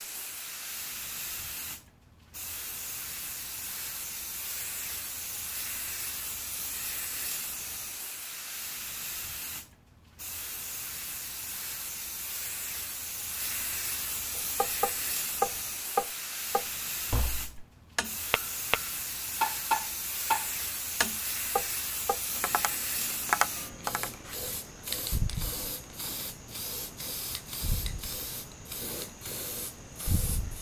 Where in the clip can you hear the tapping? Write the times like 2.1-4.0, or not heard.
14.3-24.2.